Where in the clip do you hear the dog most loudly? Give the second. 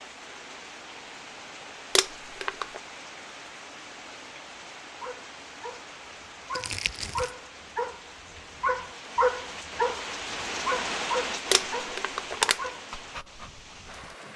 9 s.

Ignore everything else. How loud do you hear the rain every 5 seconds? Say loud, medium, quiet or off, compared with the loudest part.
medium, medium, loud.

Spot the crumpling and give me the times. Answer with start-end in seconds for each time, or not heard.
1.9-2.8, 6.5-7.3, 11.5-12.7.